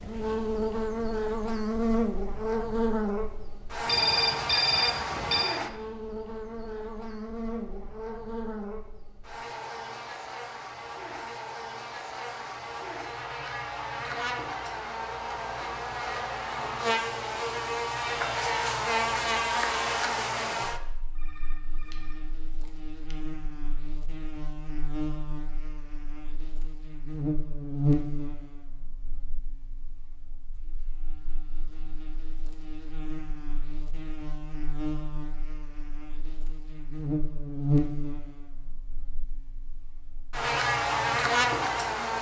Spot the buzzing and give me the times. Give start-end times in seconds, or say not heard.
0.0-42.1.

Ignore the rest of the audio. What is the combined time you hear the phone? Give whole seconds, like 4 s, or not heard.
3 s.